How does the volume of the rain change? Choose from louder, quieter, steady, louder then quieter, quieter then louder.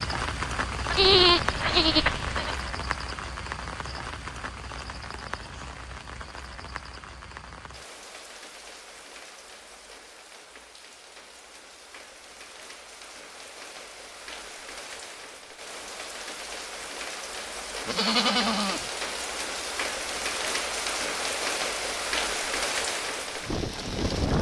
quieter then louder.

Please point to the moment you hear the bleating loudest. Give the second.
1 s.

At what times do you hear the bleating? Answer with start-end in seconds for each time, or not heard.
0.9-2.6, 17.9-18.9.